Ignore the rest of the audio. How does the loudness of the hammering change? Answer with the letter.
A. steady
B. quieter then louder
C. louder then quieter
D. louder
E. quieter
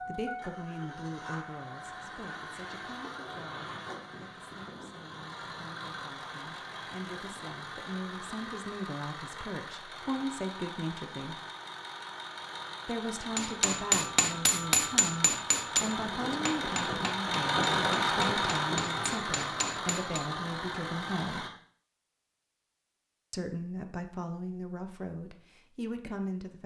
B.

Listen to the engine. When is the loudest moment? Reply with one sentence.
The loudest moment of the engine is at 18 seconds.